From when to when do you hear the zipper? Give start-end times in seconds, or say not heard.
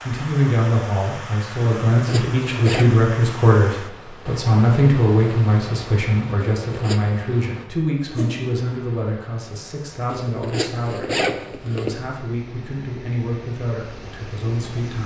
1.9-2.9, 6.7-7.2, 10.1-12.0.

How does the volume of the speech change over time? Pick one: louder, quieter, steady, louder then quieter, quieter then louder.
quieter.